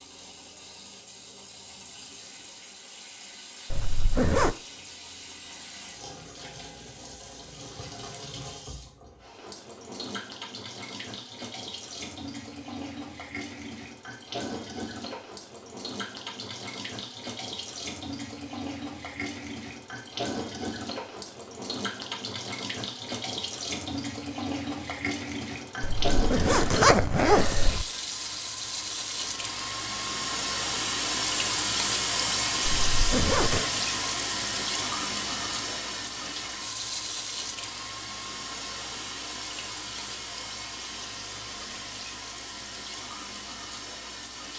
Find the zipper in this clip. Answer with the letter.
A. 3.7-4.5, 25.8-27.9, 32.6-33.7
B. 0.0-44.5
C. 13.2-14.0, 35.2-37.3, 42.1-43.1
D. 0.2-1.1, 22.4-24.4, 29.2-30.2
A.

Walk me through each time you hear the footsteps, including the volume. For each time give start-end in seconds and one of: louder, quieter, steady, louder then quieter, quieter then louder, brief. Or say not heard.
not heard.